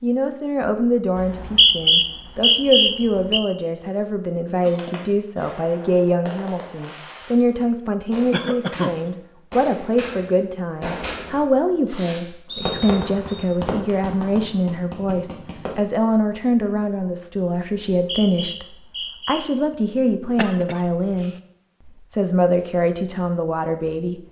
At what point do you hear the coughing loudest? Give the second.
9 s.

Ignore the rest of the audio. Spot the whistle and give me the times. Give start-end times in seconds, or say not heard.
1.1-3.4, 12.4-13.4, 17.9-19.4.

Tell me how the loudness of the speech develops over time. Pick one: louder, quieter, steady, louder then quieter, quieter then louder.
steady.